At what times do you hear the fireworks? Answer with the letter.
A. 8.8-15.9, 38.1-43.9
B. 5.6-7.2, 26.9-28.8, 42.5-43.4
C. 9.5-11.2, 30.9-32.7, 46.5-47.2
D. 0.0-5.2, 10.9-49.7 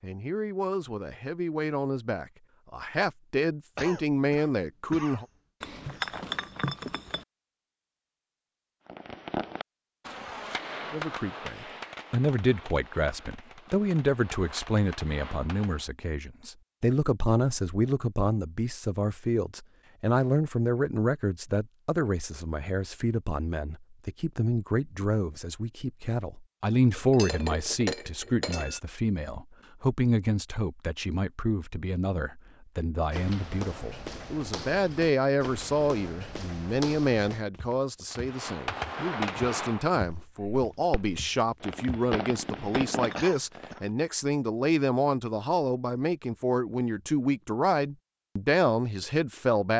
A.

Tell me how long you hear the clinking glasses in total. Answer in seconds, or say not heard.
4 s.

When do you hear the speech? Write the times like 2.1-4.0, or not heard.
0.0-5.2, 10.9-49.7.